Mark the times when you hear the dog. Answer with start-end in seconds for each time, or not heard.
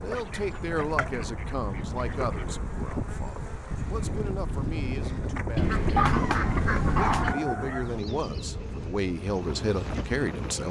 6.0-7.8.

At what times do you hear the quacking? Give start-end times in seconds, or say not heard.
0.0-2.6, 5.5-7.3.